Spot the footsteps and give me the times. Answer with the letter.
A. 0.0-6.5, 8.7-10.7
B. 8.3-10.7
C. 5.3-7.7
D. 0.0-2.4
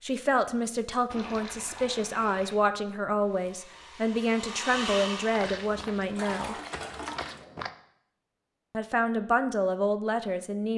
C.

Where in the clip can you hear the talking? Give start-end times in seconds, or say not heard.
0.0-6.5, 8.7-10.7.